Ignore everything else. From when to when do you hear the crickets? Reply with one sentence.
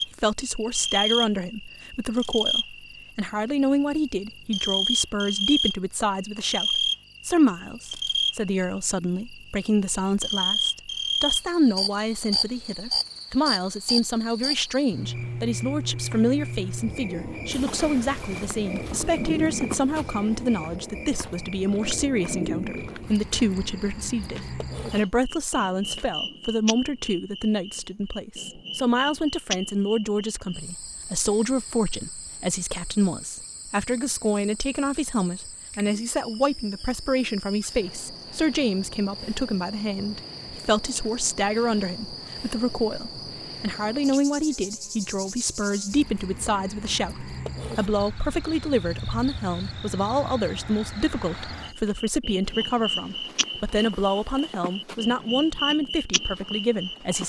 You can hear the crickets from 0.0 to 57.2 s.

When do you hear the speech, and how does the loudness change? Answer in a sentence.
You can hear the speech from 0.1 to 57.2 s, at a steady volume.